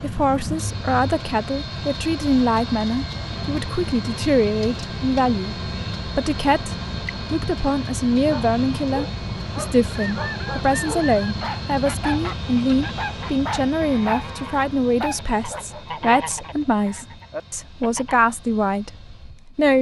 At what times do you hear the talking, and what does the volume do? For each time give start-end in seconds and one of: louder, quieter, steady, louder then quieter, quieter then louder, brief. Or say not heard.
0.0-19.7 steady.